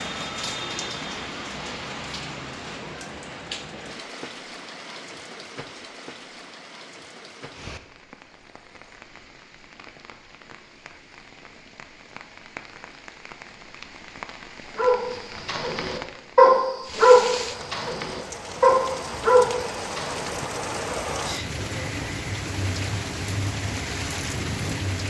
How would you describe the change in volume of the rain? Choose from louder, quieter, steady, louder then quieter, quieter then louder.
quieter then louder.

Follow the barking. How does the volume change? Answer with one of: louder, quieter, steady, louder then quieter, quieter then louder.
louder then quieter.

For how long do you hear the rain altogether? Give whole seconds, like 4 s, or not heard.
25 s.